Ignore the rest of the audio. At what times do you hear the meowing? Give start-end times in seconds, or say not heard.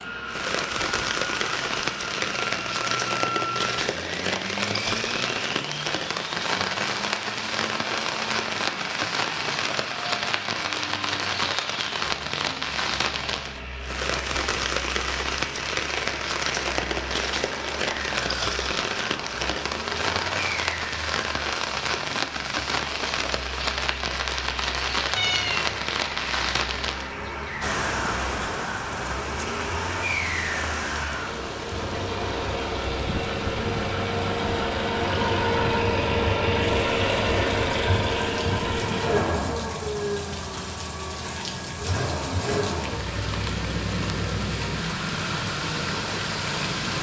25.1-25.8.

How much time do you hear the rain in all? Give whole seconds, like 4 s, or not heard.
47 s.